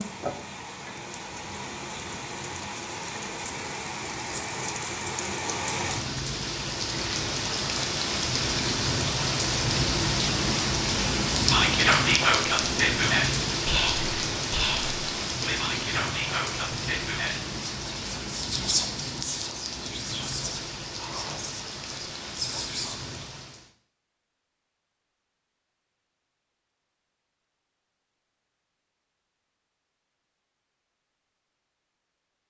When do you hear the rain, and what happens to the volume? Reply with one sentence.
You can hear the rain from 0.0 to 23.7 s, getting louder then quieter.